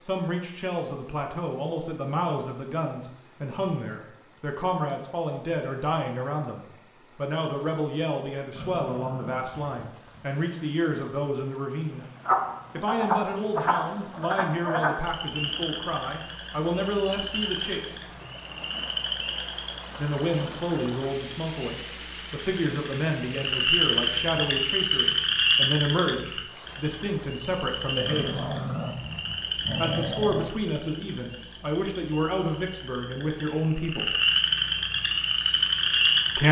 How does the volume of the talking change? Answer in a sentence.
The volume of the talking stays about the same.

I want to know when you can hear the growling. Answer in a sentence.
You can hear the growling from 8.6 to 10.2 s and from 28.1 to 30.5 s.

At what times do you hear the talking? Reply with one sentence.
You can hear the talking from 0.0 to 12.1 s, from 12.7 to 18.1 s, from 19.9 to 28.4 s and from 29.8 to 34.1 s.